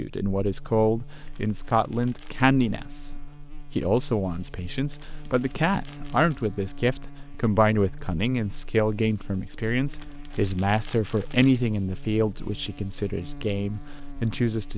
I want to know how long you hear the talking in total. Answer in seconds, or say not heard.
14 s.